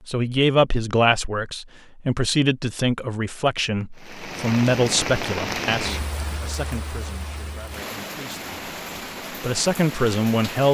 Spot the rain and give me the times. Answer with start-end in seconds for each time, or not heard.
4.0-10.6.